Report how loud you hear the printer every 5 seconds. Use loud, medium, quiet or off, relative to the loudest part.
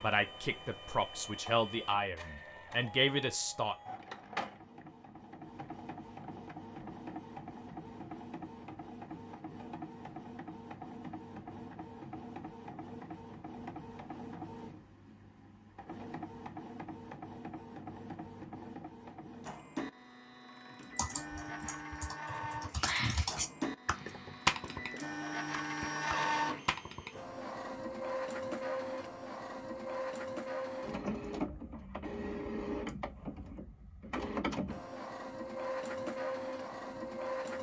medium, medium, medium, medium, medium, loud, loud, loud.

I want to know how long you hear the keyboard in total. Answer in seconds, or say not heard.
6 s.